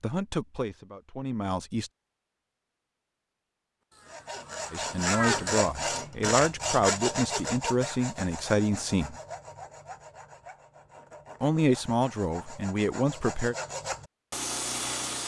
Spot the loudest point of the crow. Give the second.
5 s.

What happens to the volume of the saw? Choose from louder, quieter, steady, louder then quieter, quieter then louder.
quieter then louder.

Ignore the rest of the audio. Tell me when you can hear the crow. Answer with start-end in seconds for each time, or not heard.
3.9-5.5.